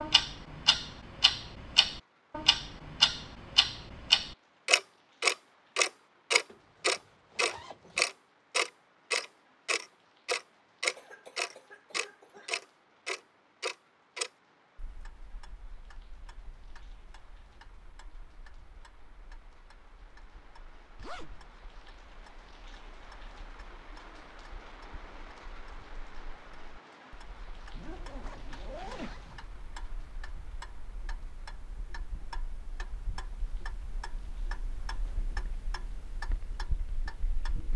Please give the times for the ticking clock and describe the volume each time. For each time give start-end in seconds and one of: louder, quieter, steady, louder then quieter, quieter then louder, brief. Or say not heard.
0.0-37.7 quieter then louder.